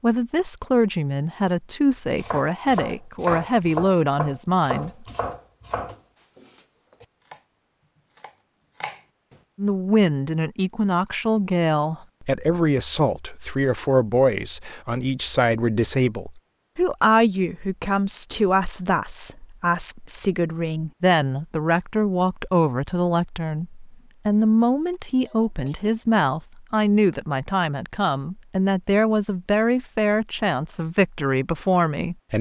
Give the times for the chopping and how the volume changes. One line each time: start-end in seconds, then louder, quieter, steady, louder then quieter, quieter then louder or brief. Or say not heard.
2.0-9.4 quieter then louder.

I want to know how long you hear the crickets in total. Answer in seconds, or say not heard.
not heard.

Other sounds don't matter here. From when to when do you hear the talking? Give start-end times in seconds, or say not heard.
0.0-5.0, 9.6-32.3.